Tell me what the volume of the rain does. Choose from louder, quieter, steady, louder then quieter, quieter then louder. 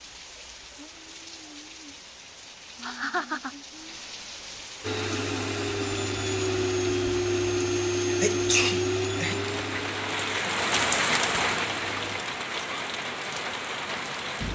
louder.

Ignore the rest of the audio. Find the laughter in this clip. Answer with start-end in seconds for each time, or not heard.
2.8-3.5.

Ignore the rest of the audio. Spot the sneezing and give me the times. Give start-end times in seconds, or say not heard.
8.1-9.3.